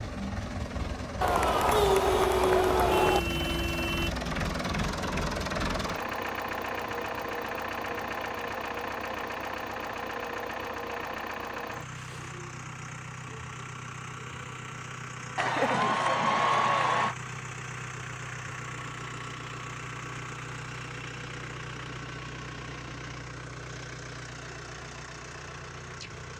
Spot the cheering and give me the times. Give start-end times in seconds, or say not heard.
1.2-3.2, 15.3-17.1.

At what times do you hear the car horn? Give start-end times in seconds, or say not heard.
2.8-4.1.